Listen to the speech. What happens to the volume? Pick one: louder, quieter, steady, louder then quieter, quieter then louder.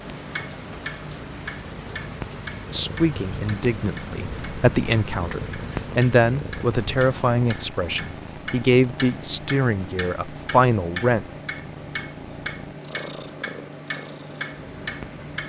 louder.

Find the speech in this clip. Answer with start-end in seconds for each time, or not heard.
2.7-11.2.